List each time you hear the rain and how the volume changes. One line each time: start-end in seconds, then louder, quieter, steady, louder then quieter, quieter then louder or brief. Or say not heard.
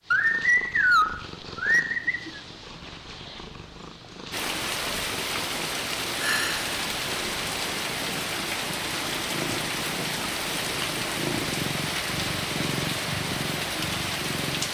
4.3-14.6 steady.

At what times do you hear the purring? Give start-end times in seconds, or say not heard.
0.0-14.6.